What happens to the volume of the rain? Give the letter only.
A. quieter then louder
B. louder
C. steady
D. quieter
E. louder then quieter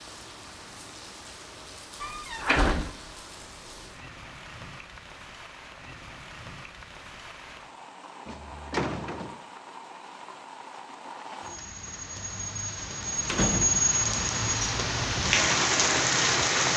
B.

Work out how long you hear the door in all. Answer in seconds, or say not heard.
3 s.